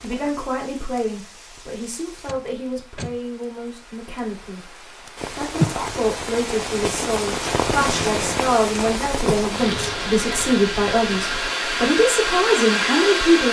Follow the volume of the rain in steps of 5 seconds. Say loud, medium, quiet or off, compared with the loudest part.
quiet, loud, medium.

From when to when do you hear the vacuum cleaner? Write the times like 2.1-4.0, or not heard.
9.6-13.4.